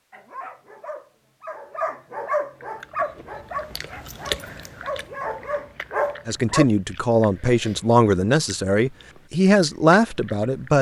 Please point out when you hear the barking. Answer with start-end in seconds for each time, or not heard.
0.1-6.7.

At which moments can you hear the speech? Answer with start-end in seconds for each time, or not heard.
6.2-10.7.